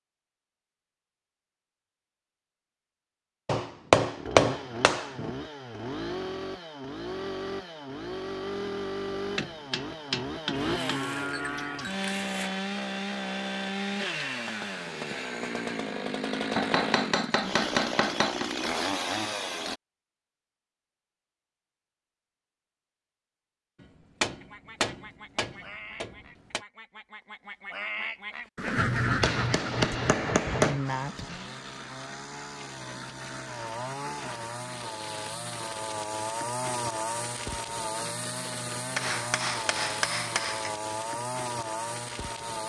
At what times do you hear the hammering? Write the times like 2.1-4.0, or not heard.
3.5-5.3, 9.2-11.1, 16.6-18.5, 23.8-26.6, 28.8-30.8, 39.0-40.8.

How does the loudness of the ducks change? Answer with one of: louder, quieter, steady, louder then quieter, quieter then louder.
louder then quieter.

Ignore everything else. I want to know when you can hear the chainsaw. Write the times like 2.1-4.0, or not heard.
4.2-19.8, 30.9-42.6.